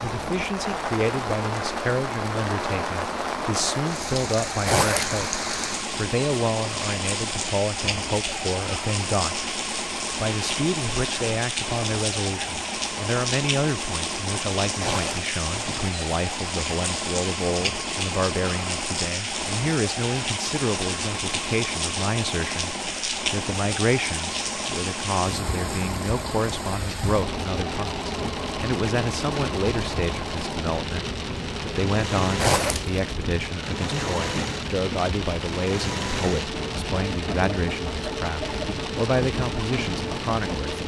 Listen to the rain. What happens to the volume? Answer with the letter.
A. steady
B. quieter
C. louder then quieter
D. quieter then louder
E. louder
A.